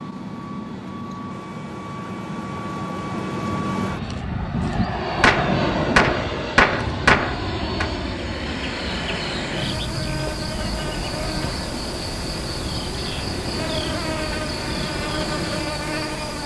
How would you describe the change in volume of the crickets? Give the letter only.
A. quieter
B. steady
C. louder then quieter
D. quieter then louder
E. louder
B.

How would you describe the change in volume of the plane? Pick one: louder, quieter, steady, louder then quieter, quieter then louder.
louder then quieter.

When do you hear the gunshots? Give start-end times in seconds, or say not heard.
5.2-7.9.